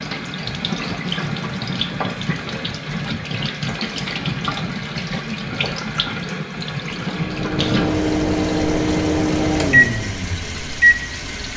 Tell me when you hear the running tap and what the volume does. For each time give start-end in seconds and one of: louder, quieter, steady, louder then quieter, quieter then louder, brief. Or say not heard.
0.0-11.5 quieter.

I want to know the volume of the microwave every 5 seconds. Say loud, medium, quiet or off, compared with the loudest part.
off, loud, loud.